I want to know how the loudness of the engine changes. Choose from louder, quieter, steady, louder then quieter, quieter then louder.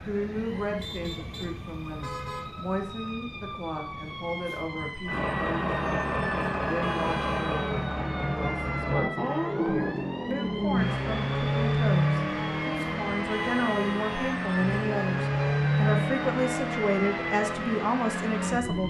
steady.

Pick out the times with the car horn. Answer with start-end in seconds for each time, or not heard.
0.8-2.6, 6.7-7.7, 13.2-14.4.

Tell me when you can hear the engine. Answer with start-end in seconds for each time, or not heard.
5.0-18.8.